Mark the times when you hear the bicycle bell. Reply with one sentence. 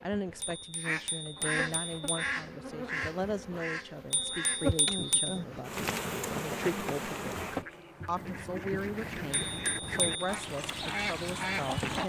You can hear the bicycle bell from 0.4 to 2.4 s, from 4.1 to 5.3 s and from 9.3 to 10.2 s.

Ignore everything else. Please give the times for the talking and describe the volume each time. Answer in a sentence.
The talking can be heard from 0.0 to 12.0 s, at a steady volume.